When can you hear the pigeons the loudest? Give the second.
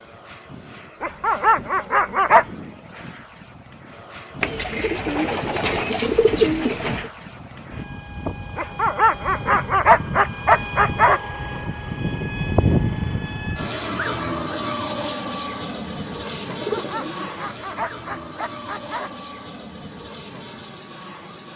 6 s.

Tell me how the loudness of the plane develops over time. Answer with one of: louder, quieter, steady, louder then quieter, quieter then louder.
louder then quieter.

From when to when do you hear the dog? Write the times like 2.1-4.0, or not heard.
1.0-2.5, 8.6-11.2, 16.6-19.1.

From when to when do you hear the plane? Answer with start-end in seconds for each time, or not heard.
0.0-21.5.